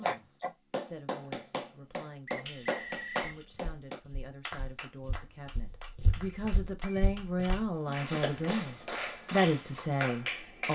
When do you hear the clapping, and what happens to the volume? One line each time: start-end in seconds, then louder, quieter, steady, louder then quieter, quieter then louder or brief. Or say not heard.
0.0-10.7 quieter then louder.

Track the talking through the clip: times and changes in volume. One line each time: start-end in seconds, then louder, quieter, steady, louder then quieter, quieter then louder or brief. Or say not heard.
0.0-10.7 louder.